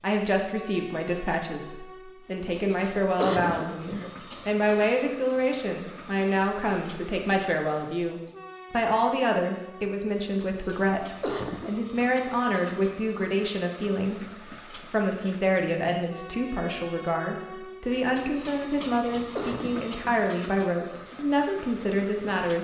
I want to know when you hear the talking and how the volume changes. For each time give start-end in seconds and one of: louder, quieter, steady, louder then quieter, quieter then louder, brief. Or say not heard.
0.0-22.5 steady.